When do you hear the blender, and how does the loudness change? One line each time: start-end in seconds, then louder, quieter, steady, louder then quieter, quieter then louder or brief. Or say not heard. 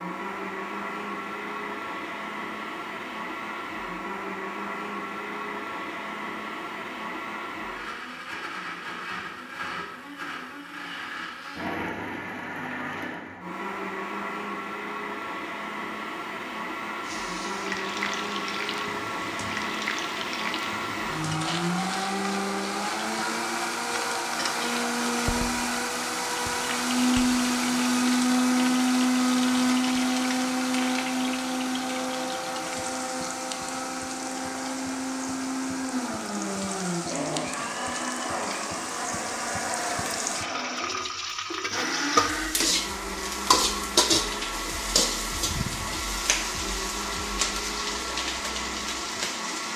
0.0-49.7 louder then quieter.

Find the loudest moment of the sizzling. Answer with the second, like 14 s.
44 s.